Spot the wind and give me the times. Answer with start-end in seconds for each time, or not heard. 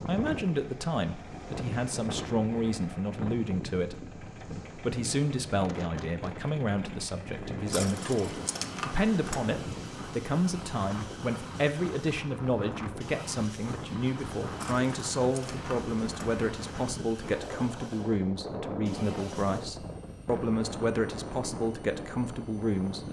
0.0-23.0.